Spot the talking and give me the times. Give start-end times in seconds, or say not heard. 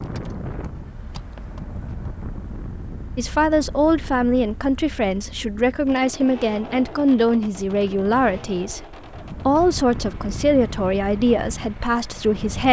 3.1-12.6.